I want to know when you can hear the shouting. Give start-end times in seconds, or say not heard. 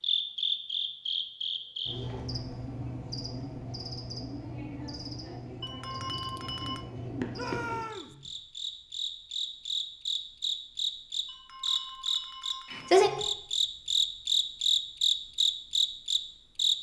7.3-8.2.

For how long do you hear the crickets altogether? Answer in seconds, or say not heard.
17 s.